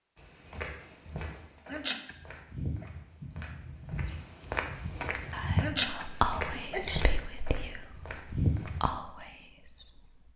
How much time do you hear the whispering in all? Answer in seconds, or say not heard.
5 s.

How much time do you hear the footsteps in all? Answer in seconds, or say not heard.
9 s.